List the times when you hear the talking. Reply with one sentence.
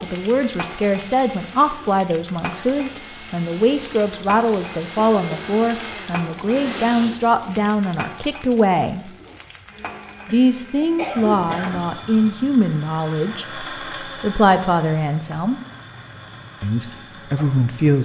The talking can be heard from 0.0 to 9.1 s, from 10.2 to 15.6 s and from 16.6 to 17.9 s.